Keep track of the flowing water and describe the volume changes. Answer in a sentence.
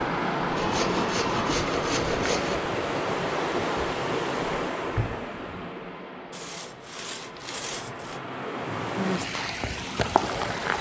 The loudness of the flowing water goes down, then up.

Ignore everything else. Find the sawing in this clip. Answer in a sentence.
The sawing can be heard from 0.6 to 2.6 s and from 6.3 to 8.2 s.